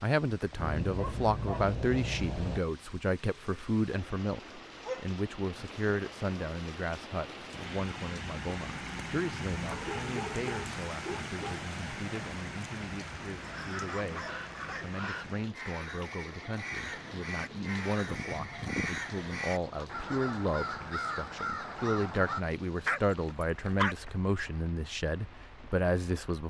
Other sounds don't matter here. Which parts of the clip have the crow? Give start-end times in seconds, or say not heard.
14.2-22.4.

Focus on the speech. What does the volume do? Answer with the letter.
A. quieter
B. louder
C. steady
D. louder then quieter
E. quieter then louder
E.